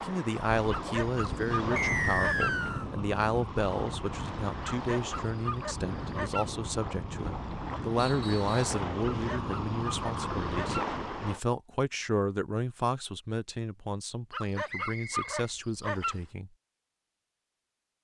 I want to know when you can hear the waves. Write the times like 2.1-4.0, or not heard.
0.0-11.4.